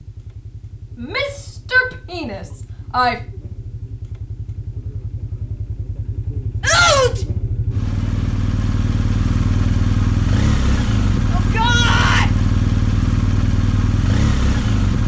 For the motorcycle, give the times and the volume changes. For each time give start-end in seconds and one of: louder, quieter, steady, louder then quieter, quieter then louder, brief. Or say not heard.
0.0-15.0 louder.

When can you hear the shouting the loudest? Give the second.
7 s.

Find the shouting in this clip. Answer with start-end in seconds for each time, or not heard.
1.0-3.2, 6.6-7.2, 11.3-12.2.